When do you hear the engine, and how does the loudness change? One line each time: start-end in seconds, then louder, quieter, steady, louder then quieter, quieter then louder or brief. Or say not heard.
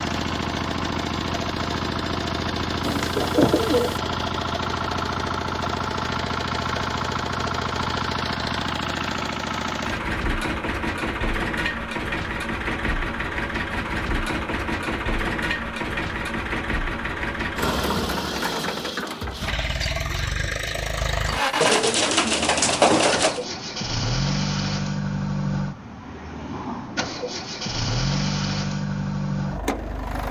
0.0-30.2 steady.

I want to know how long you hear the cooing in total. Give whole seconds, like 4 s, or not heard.
3 s.